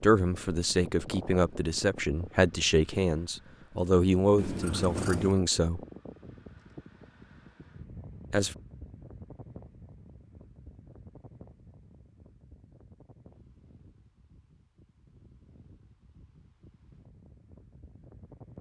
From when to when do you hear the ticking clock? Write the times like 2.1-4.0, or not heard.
not heard.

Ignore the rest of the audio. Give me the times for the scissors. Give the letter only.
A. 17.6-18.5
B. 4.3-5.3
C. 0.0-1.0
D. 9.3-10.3
B.